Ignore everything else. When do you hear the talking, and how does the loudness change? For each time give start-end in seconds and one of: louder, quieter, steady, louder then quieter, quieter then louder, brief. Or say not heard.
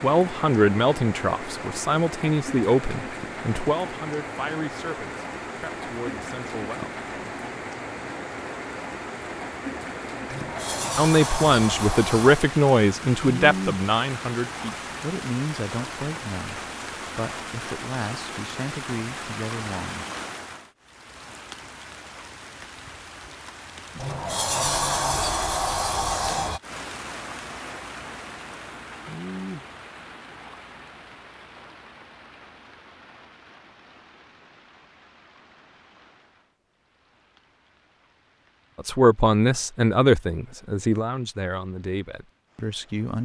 0.0-6.9 quieter
10.9-20.1 quieter
38.8-43.2 quieter.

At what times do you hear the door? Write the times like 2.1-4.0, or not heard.
10.2-12.4, 23.9-26.6.